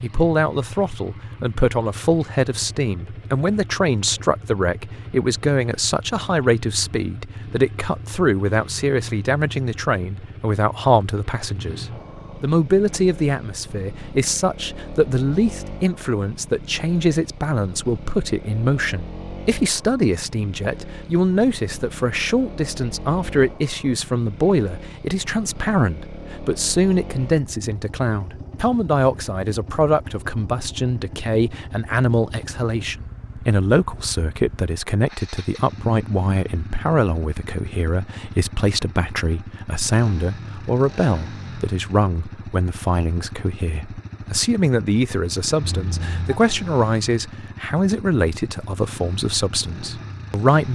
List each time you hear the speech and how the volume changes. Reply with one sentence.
You can hear the speech from 0.0 to 50.7 s, at a steady volume.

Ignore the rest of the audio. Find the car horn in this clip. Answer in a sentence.
You can hear the car horn from 45.6 to 46.4 s.